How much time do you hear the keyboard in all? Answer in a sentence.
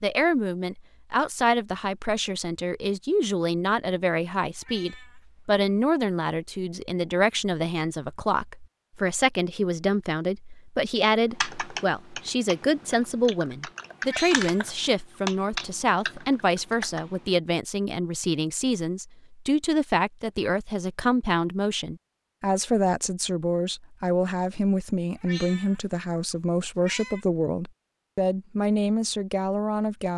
You can hear the keyboard for 6 seconds altogether.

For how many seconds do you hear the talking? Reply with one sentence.
The talking can be heard for 30 seconds in total.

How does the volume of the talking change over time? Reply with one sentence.
The loudness of the talking stays about the same.